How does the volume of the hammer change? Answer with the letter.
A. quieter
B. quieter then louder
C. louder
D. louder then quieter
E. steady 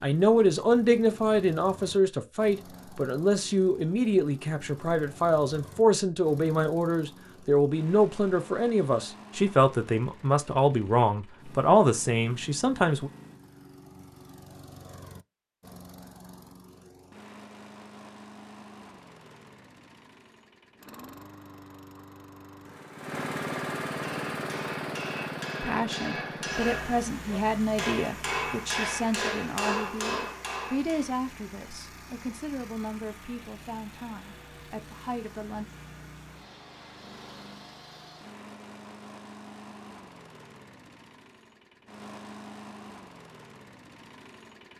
C.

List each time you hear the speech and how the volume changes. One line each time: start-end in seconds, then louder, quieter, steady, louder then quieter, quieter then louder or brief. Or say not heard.
0.0-13.1 steady
25.6-35.6 quieter.